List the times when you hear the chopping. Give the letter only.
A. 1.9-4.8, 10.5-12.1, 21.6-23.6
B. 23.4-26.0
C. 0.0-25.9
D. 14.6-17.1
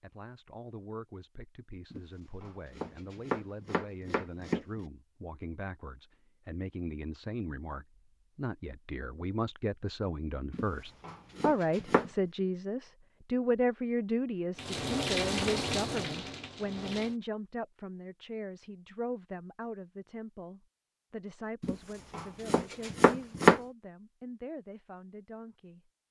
A.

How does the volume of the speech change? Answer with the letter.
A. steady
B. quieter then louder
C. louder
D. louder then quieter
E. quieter
D.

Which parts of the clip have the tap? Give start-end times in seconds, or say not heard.
14.6-17.1.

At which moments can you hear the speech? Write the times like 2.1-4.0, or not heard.
0.0-25.9.